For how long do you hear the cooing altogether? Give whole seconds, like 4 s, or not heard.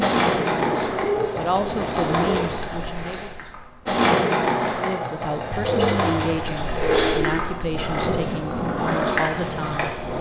4 s.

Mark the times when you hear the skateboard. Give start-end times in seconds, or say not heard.
0.0-10.1.